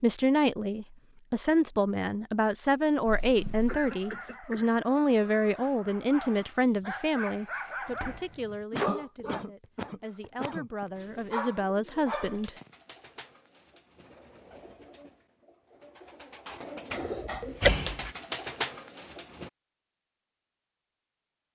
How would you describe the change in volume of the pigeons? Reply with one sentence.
The volume of the pigeons goes up.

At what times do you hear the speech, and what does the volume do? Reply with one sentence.
The speech can be heard from 0.0 to 12.5 s, getting quieter then louder.